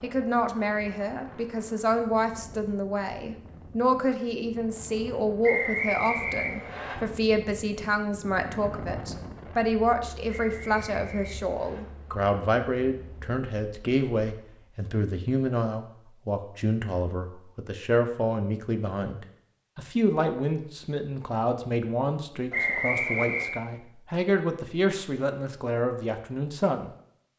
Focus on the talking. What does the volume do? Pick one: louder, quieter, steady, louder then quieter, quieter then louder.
steady.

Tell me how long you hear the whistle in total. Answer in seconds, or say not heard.
4 s.